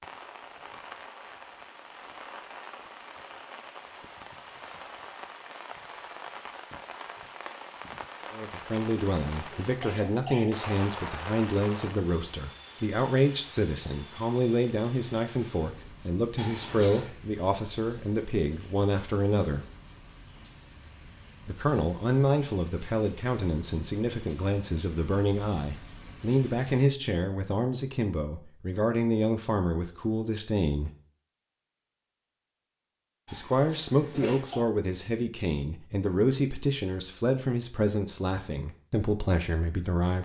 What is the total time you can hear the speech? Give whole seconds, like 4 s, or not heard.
28 s.